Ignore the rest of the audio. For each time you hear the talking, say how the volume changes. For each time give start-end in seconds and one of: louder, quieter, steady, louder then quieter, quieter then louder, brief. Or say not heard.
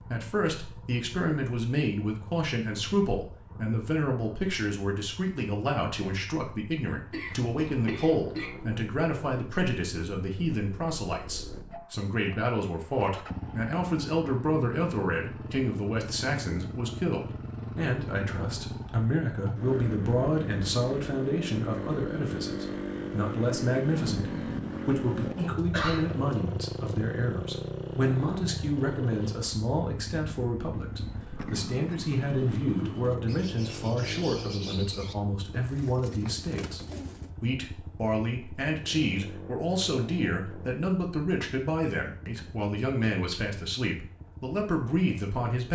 0.0-45.7 steady.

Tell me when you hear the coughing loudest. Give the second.
26 s.